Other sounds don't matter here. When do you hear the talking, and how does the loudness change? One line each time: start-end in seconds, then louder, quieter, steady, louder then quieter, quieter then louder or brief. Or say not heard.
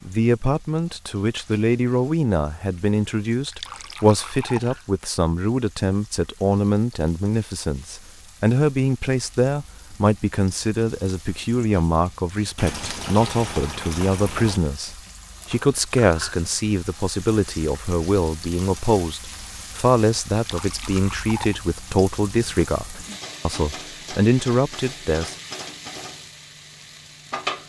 0.1-25.4 steady.